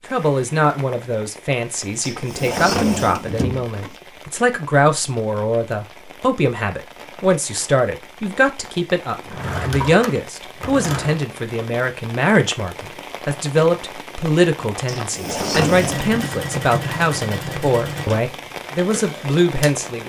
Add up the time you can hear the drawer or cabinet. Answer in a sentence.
The drawer or cabinet can be heard for 5 seconds in total.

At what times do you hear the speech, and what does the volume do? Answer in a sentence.
The speech can be heard from 0.1 to 20.0 s, at a steady volume.